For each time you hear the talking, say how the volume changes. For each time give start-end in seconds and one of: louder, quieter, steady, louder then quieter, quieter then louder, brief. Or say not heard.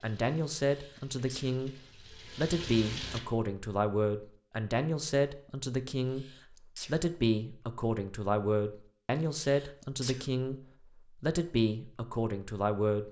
0.0-13.0 steady.